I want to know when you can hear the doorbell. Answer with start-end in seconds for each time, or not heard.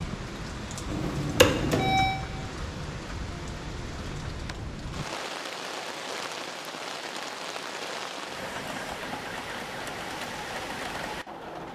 0.9-2.2.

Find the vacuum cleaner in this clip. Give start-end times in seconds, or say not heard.
not heard.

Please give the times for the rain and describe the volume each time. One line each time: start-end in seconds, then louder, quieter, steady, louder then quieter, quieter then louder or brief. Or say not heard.
0.0-11.7 steady.